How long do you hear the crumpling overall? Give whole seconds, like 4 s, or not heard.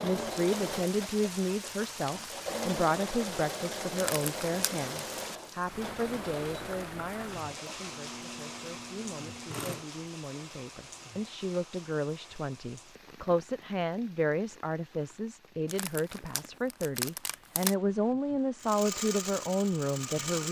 3 s.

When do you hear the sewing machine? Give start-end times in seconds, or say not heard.
0.0-9.8, 18.6-20.4.